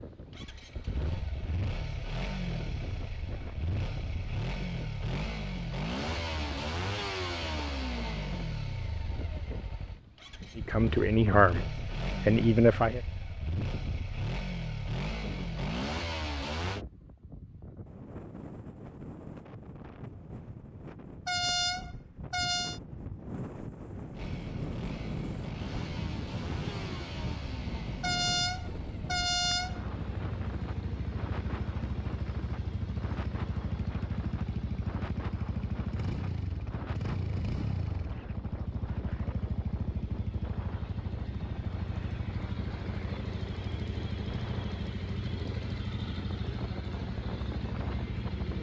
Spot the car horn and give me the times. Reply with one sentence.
The car horn can be heard from 21.2 to 22.8 s and from 28.0 to 29.8 s.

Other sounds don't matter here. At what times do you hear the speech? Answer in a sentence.
You can hear the speech from 10.6 to 13.0 s.